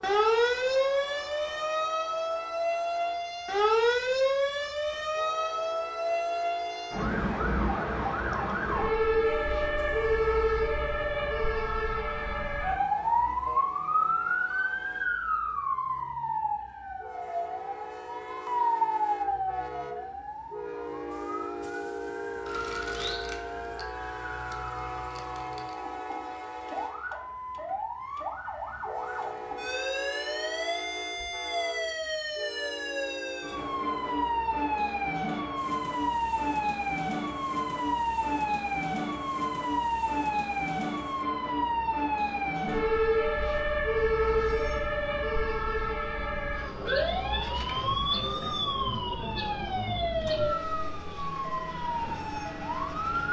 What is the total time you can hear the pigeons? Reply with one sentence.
The pigeons can't be heard in this clip.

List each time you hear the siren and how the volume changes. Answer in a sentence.
The siren can be heard from 0.0 to 53.2 s, getting quieter then louder.